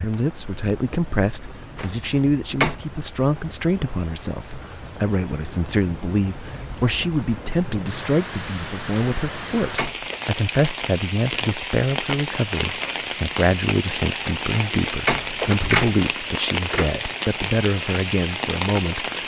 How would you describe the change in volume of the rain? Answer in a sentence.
The loudness of the rain goes up.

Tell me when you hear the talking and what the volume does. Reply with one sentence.
The talking can be heard from 0.0 to 19.2 s, at a steady volume.